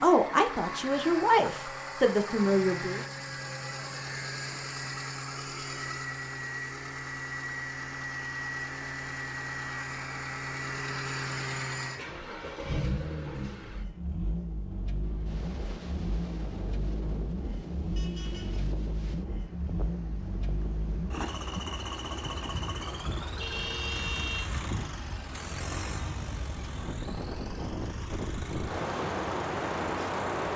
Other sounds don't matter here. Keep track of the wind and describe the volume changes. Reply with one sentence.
The loudness of the wind goes up.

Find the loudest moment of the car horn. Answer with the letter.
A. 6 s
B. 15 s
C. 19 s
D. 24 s
D.